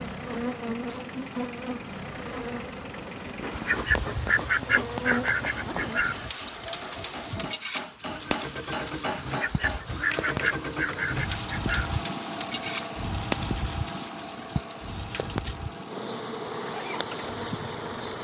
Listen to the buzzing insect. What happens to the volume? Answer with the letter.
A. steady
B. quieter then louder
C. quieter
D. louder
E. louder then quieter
A.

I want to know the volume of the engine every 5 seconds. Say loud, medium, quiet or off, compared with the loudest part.
medium, medium, loud, medium.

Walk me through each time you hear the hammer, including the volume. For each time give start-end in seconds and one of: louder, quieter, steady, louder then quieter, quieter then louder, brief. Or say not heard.
5.5-10.3 louder.